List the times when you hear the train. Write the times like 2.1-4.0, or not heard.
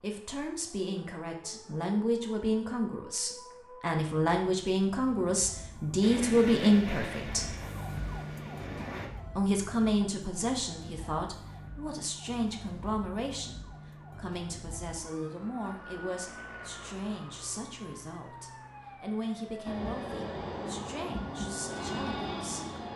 6.0-9.1, 19.6-22.9.